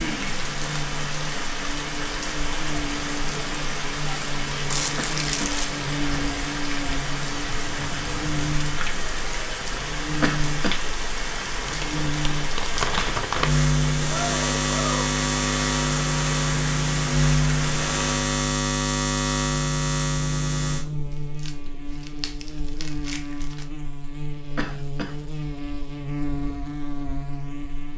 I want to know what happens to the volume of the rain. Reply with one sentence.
The loudness of the rain stays about the same.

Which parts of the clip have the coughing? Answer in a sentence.
You can hear the coughing from 5.0 to 5.5 s, from 10.2 to 10.8 s and from 24.6 to 25.1 s.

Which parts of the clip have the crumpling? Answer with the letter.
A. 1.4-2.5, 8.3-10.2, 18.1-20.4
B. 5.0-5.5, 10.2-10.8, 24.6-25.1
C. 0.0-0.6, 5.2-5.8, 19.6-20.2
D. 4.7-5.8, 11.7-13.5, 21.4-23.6
D.